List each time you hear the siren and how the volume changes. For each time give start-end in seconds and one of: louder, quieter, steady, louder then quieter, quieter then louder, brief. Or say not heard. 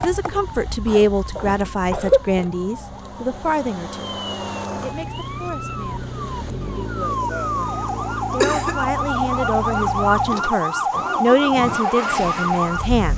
0.0-13.1 louder.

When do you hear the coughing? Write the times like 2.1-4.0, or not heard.
0.2-2.5, 8.4-8.8.